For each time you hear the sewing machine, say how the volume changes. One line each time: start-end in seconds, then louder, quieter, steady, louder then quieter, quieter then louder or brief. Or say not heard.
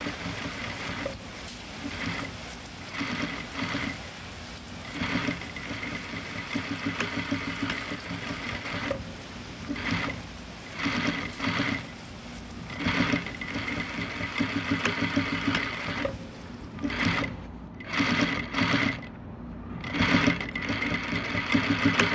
0.0-22.1 louder.